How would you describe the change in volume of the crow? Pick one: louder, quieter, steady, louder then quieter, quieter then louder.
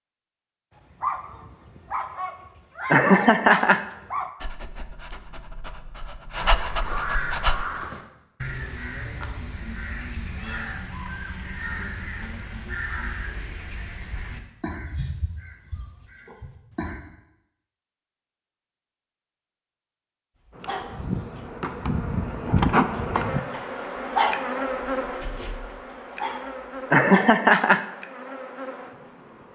quieter.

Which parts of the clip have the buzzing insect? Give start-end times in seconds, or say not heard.
20.5-29.5.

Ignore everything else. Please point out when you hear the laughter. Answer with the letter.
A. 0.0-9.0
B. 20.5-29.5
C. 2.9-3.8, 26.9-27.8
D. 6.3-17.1
C.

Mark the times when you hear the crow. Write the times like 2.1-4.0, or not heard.
6.3-17.1.